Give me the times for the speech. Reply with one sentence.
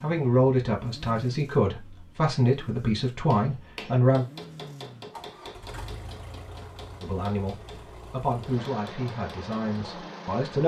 The speech can be heard from 0.0 to 4.2 s and from 7.0 to 10.6 s.